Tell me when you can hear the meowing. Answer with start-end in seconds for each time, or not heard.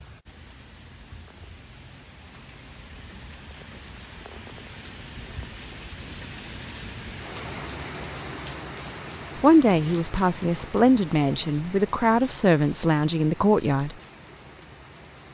not heard.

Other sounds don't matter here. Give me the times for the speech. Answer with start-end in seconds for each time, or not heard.
9.4-13.9.